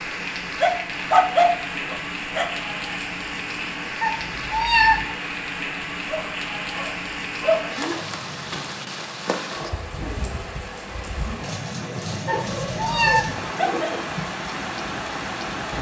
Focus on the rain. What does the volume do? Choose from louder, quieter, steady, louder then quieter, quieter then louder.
steady.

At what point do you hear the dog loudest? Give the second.
1 s.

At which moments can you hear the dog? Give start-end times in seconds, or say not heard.
0.6-2.5, 6.0-8.0, 12.2-14.1.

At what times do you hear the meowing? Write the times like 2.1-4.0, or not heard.
4.0-5.0, 12.2-13.3.